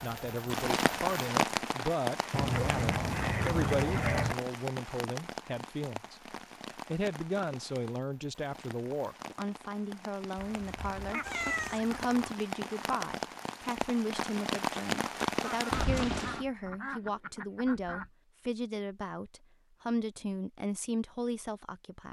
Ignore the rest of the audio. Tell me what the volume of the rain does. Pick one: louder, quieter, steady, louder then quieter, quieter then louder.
quieter then louder.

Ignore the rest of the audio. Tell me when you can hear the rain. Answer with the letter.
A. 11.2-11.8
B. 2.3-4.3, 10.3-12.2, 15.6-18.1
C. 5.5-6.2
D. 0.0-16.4
D.